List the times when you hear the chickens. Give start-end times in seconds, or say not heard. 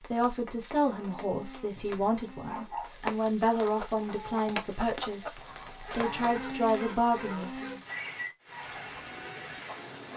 3.6-6.4, 8.4-10.1.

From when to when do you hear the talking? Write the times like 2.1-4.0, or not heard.
0.1-7.8.